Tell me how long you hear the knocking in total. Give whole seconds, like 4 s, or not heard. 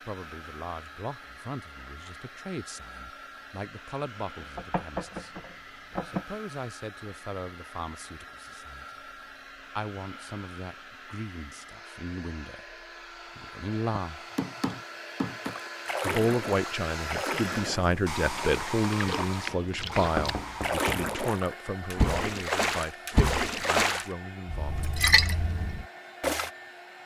5 s.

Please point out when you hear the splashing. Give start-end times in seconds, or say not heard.
15.4-26.5.